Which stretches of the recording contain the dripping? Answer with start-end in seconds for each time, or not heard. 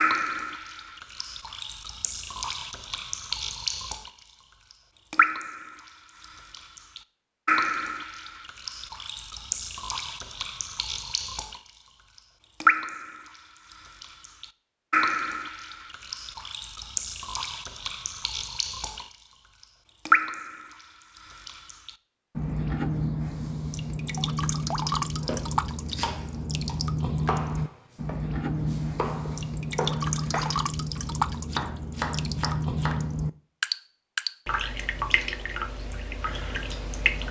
0.0-4.1, 4.7-37.2.